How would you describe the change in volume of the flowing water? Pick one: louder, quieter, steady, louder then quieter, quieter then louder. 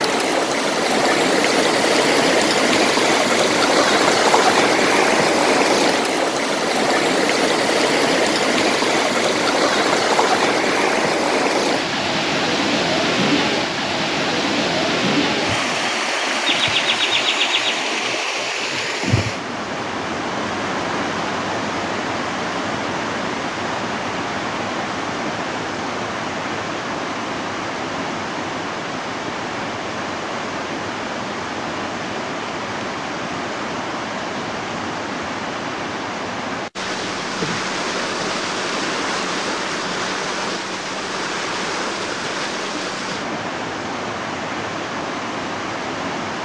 quieter.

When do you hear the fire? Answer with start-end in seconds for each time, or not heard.
not heard.